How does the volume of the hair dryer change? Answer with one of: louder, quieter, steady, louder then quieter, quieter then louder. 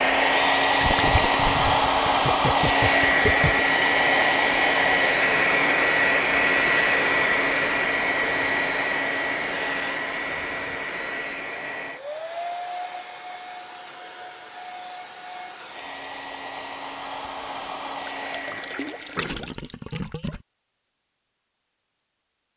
quieter.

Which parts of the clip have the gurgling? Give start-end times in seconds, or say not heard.
0.8-3.6, 18.2-20.4.